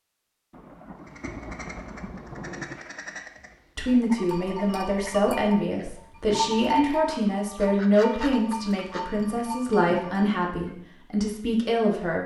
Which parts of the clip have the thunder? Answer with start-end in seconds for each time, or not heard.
0.5-2.8.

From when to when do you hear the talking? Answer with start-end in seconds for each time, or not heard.
3.8-12.2.